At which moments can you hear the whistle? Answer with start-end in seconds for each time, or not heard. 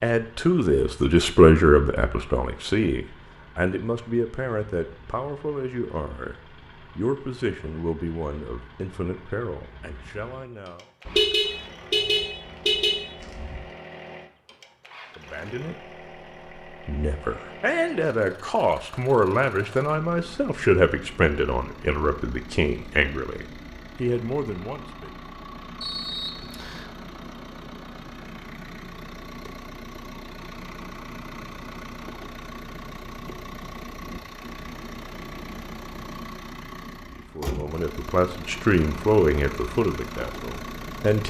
25.8-26.9.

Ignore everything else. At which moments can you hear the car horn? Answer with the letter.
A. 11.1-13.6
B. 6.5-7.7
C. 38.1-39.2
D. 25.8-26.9
A.